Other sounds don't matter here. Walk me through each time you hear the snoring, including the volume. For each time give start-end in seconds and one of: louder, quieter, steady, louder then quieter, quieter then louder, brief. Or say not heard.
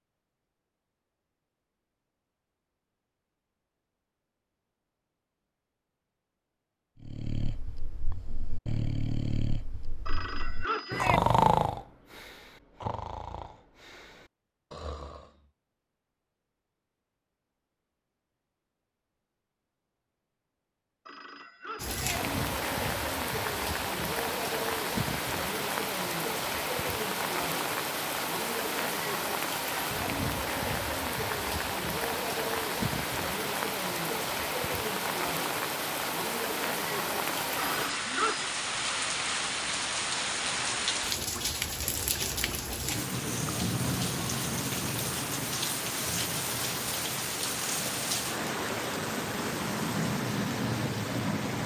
7.0-15.4 louder then quieter.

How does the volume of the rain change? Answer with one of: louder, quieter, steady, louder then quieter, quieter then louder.
steady.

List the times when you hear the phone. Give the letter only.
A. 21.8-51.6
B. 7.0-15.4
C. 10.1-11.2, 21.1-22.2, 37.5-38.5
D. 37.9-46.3
C.